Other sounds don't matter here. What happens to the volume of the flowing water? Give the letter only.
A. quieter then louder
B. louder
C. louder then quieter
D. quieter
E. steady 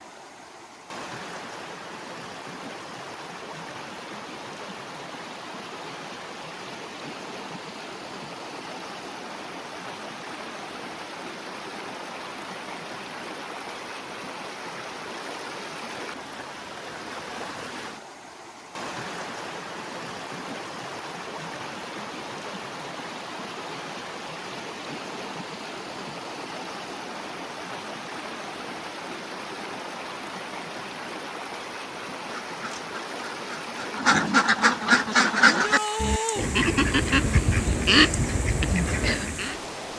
E.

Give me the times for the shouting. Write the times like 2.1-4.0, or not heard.
35.5-36.5.